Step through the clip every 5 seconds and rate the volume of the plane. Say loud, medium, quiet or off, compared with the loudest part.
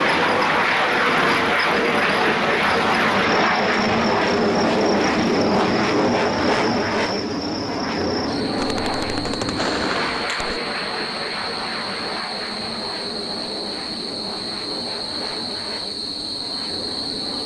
loud, loud, medium, quiet.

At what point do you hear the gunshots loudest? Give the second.
10 s.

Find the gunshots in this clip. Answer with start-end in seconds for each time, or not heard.
8.6-10.6.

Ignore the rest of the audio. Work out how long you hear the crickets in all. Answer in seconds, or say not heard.
17 s.